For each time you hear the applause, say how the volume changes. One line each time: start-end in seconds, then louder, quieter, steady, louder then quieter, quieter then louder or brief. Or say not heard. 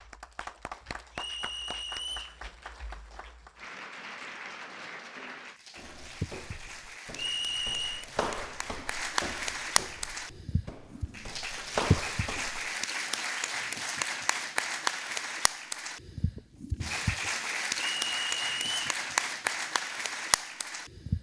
0.0-21.1 louder.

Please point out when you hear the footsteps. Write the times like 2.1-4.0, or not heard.
5.8-12.7.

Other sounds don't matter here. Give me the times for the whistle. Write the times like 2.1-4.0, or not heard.
1.1-2.4, 7.2-8.1, 18.0-18.8.